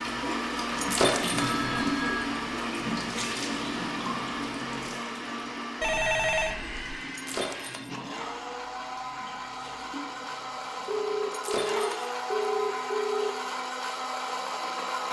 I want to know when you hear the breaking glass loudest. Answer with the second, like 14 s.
1 s.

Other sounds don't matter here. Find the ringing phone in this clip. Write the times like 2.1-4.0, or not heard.
1.4-2.4, 5.8-6.8, 10.8-13.3.